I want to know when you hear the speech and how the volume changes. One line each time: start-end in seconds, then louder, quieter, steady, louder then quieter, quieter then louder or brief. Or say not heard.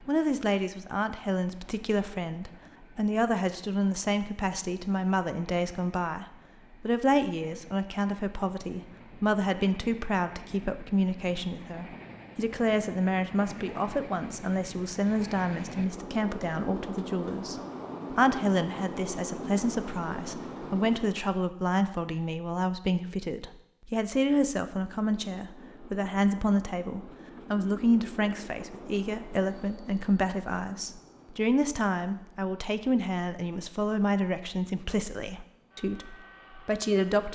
0.1-37.2 steady.